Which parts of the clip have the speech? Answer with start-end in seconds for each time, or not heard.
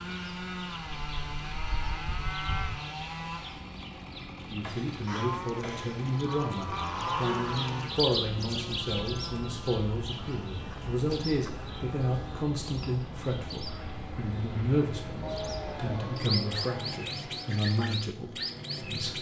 4.5-19.1.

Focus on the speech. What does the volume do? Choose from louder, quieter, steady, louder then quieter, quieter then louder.
steady.